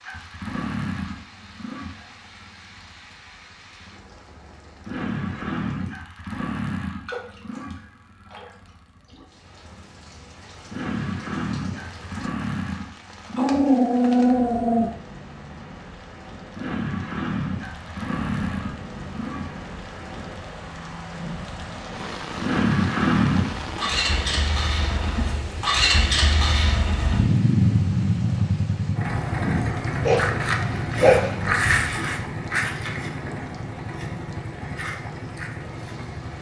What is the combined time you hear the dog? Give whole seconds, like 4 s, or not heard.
3 s.